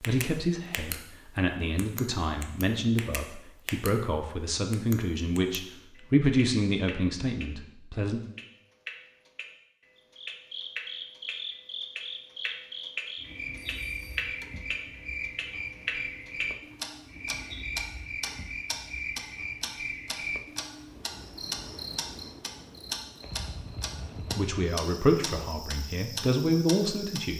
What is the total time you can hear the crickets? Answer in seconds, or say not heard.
17 s.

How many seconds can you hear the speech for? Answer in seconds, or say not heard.
11 s.